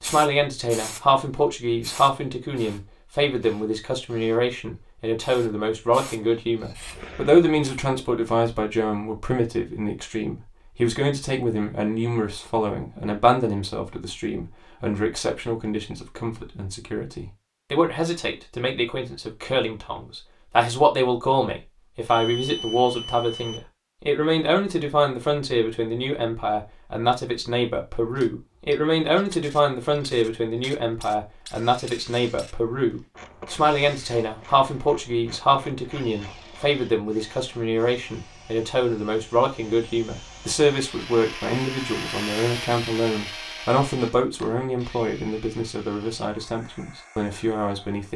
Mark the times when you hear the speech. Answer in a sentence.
You can hear the speech from 0.0 to 48.1 s.